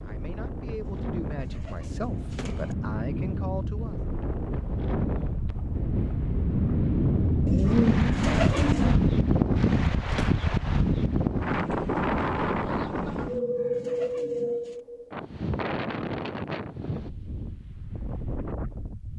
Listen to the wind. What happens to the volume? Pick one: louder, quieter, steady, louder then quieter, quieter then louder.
louder then quieter.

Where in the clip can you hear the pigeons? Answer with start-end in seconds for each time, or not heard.
0.7-2.8, 7.5-8.9, 13.1-14.8.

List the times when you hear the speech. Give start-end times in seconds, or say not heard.
0.1-4.0.